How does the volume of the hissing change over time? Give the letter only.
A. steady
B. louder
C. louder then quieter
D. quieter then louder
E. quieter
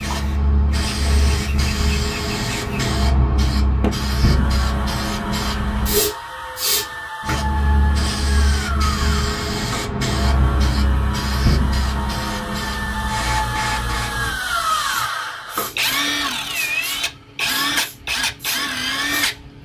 E.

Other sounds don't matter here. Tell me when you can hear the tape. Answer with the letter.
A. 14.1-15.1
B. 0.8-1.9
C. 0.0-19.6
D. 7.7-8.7
B.